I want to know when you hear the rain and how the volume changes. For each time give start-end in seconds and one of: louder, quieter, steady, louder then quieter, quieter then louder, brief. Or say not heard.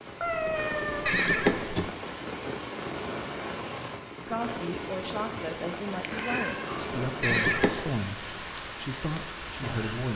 0.0-10.1 steady.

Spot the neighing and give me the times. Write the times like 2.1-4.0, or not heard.
1.1-1.9, 7.2-8.0.